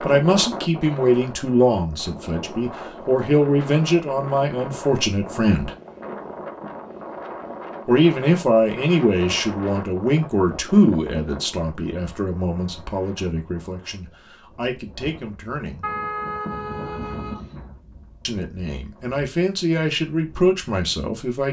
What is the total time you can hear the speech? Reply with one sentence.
You can hear the speech for 17 seconds altogether.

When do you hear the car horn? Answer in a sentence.
You can hear the car horn from 15.8 to 17.6 s.